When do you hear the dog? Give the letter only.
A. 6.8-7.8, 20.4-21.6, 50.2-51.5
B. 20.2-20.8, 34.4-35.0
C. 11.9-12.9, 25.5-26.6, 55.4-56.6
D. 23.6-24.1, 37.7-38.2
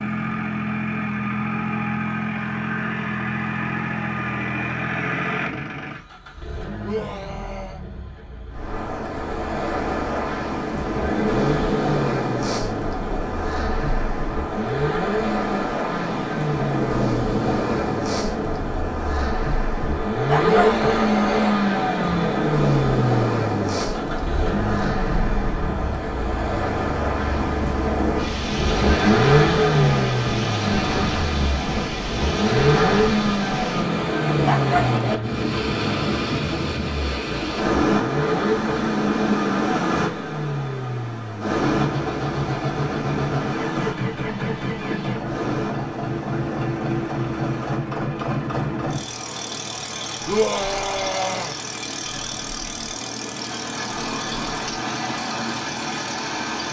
B.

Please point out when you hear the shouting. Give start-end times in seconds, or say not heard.
6.8-7.8, 20.4-21.6, 50.2-51.5.